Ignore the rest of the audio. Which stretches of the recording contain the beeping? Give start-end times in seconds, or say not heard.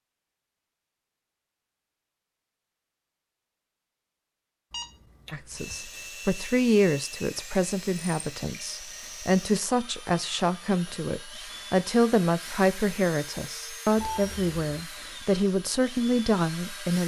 4.7-5.8, 13.9-14.8.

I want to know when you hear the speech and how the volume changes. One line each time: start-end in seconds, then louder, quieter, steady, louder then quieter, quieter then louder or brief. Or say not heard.
5.3-17.0 steady.